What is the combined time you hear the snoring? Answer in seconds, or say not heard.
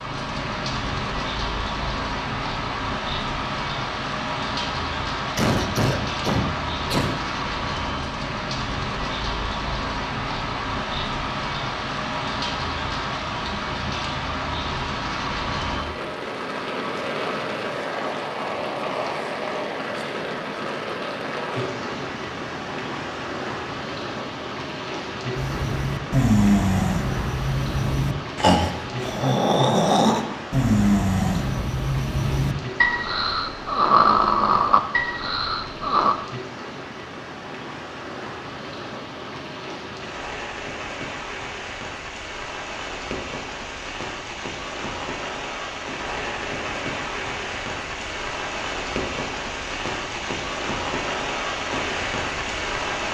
11 s.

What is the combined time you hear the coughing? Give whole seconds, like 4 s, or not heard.
2 s.